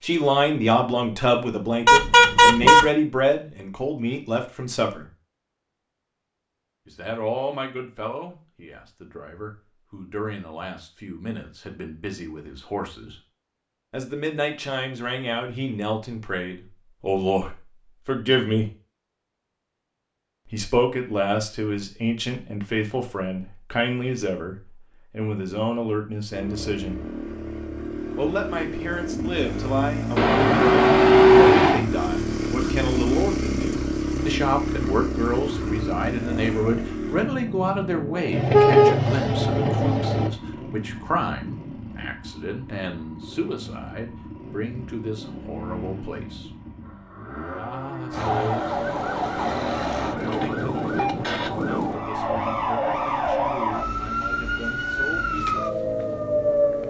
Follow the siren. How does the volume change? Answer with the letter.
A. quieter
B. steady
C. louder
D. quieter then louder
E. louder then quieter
B.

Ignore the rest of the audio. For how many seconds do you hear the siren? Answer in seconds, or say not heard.
9 s.